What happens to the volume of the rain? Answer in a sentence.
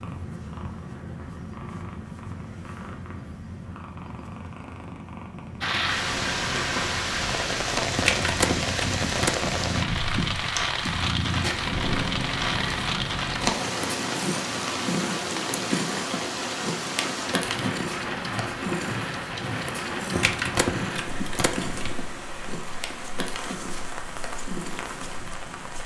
The loudness of the rain goes down.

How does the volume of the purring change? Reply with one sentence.
The loudness of the purring goes up, then down.